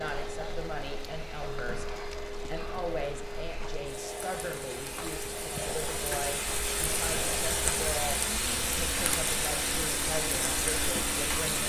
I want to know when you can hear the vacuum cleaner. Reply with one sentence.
You can hear the vacuum cleaner from 0.0 to 11.4 s.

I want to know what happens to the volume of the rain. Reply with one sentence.
The loudness of the rain goes up.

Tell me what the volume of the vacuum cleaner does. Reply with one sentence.
The loudness of the vacuum cleaner stays about the same.